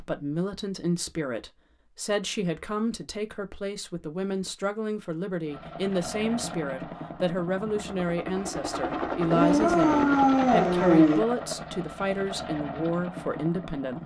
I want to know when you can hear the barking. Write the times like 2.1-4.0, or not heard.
9.3-11.2.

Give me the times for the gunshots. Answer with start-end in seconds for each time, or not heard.
not heard.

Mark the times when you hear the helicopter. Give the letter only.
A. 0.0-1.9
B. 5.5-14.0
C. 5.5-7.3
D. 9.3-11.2
B.